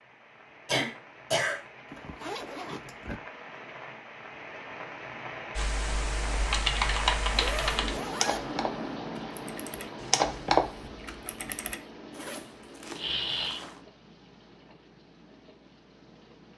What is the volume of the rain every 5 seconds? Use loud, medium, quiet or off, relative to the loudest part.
medium, loud, medium, quiet.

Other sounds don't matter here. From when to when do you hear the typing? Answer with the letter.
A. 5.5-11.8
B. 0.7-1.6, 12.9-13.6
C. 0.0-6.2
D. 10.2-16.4
A.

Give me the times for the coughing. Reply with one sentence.
You can hear the coughing from 0.7 to 1.6 s and from 12.9 to 13.6 s.